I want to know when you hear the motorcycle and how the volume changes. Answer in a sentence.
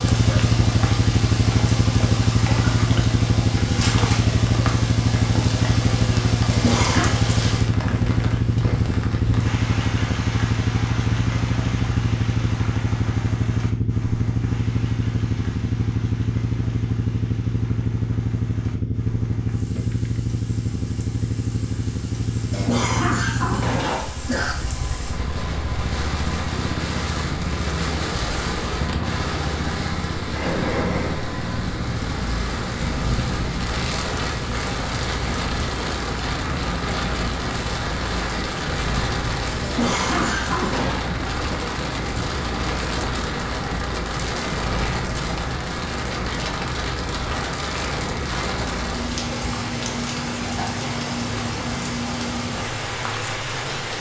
The motorcycle can be heard from 0.0 to 53.9 s, getting quieter.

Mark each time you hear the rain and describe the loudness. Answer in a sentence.
The rain can be heard from 0.0 to 53.9 s, getting quieter then louder.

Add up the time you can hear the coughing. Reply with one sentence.
You can hear the coughing for 4 seconds altogether.